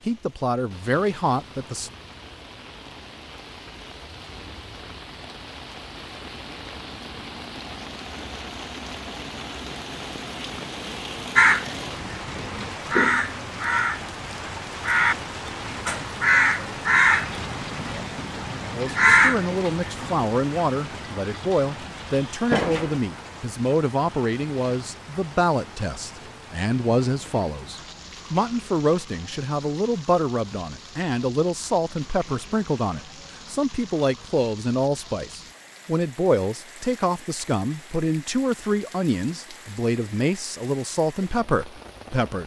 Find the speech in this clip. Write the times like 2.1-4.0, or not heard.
0.1-1.9, 18.8-42.4.